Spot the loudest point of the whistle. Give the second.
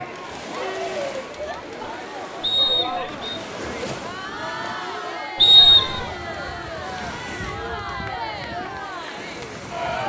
6 s.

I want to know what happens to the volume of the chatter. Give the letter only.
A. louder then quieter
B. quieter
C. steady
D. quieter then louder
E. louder
C.